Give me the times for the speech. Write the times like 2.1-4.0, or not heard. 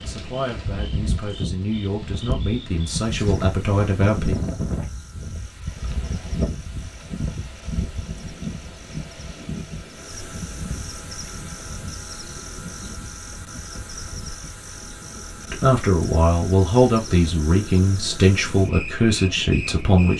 0.0-4.3, 15.5-20.1.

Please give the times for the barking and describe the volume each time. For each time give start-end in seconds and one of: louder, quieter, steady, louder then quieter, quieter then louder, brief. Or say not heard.
not heard.